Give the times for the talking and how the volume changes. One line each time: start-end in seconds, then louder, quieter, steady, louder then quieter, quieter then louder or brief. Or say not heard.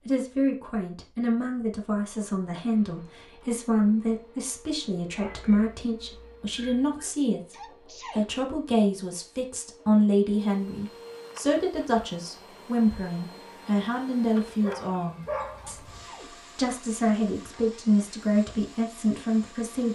0.1-19.9 steady.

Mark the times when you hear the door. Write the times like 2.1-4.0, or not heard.
not heard.